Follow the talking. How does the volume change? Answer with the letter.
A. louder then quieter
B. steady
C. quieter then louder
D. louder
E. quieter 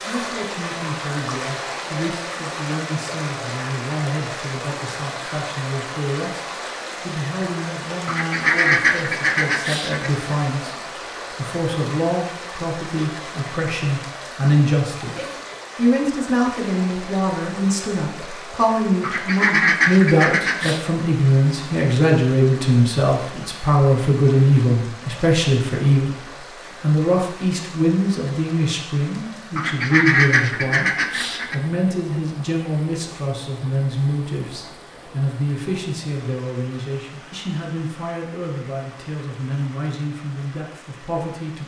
A.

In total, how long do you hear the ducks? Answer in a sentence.
You can hear the ducks for 6 seconds altogether.